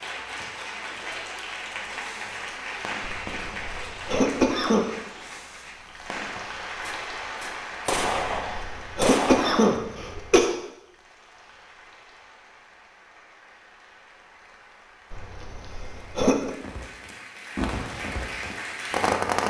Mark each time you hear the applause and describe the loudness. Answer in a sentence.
The applause can be heard from 0.0 to 19.4 s, getting quieter then louder.